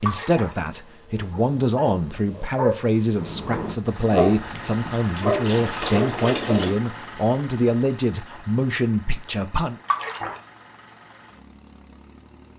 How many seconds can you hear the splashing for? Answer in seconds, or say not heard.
3 s.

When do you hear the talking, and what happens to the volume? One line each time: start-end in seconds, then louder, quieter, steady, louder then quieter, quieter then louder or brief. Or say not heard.
0.0-9.8 steady.